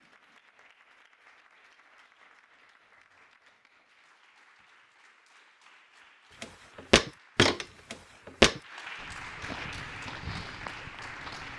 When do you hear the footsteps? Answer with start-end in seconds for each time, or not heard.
6.4-11.5.